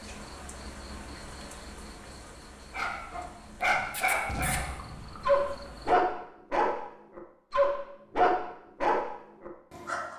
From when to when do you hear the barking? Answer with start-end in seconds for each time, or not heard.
2.7-10.1.